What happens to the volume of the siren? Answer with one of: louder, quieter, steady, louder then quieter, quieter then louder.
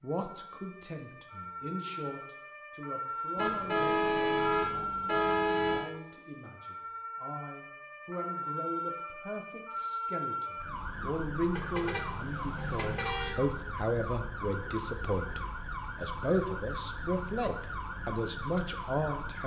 steady.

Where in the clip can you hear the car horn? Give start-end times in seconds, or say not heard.
3.4-5.9, 11.5-13.3.